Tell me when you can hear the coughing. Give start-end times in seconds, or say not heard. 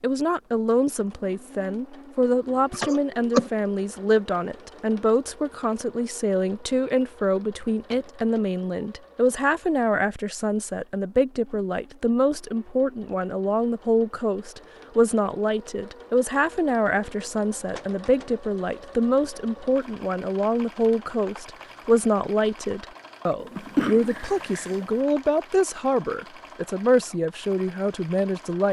2.7-3.5, 23.4-24.9.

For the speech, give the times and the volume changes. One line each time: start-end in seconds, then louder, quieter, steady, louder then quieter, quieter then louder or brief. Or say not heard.
0.0-28.6 steady.